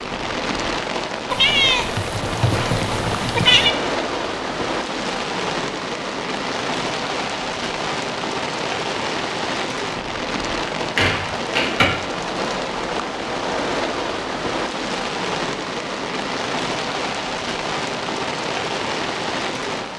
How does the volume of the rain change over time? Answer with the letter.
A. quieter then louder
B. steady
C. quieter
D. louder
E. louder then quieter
B.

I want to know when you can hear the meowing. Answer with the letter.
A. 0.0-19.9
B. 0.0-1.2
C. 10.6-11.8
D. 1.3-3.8
D.